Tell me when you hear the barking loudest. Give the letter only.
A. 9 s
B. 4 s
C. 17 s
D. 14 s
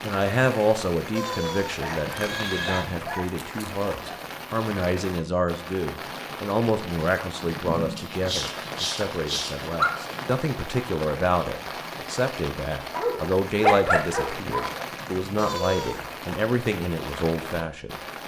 D.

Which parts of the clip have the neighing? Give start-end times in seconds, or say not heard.
1.1-2.9, 7.6-8.2, 15.3-16.1.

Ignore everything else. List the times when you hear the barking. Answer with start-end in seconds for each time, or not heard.
1.8-4.3, 8.0-9.9, 12.9-14.8.